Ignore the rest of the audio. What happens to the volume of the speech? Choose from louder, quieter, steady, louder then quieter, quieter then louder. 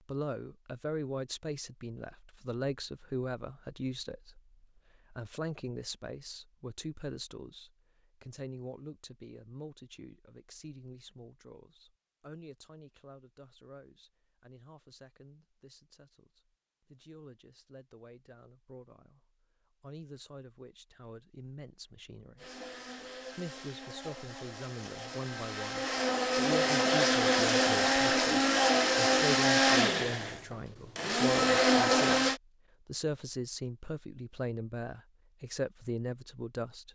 quieter then louder.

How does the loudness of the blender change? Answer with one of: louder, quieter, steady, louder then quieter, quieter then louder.
louder.